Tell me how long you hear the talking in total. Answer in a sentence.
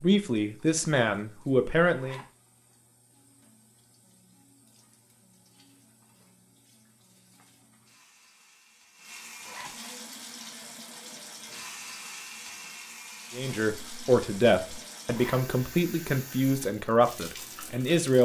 You can hear the talking for 7 seconds altogether.